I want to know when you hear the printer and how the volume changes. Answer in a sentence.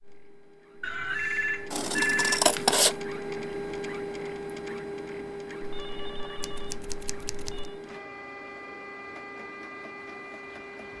The printer can be heard from 0.0 to 10.9 s, getting louder then quieter.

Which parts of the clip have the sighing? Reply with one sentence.
The sighing can't be heard in this clip.